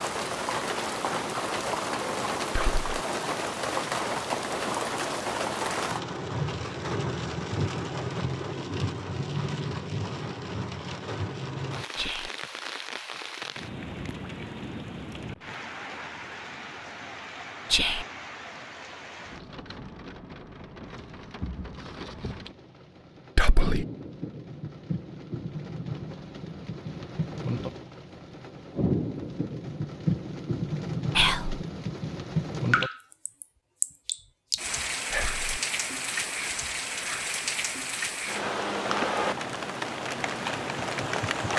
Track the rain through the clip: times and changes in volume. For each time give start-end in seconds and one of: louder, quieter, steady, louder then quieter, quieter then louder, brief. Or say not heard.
0.0-41.5 quieter then louder.